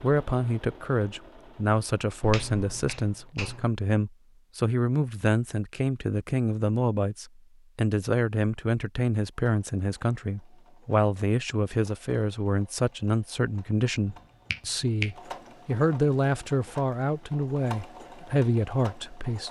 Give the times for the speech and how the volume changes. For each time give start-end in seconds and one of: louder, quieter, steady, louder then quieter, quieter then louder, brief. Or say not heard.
0.0-19.4 steady.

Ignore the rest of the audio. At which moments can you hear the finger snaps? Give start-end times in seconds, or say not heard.
2.2-3.7, 14.1-15.2.